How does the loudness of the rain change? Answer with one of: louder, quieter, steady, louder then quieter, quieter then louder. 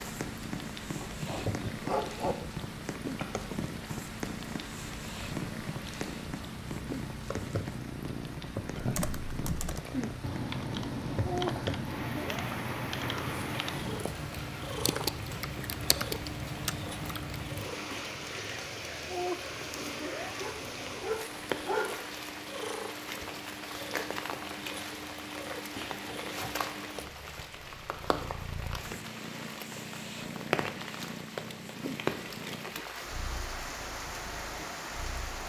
steady.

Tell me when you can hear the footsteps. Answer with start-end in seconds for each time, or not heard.
not heard.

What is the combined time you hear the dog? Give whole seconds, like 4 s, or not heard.
3 s.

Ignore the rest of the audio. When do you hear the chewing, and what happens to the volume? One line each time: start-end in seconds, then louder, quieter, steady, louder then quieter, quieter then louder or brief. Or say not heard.
not heard.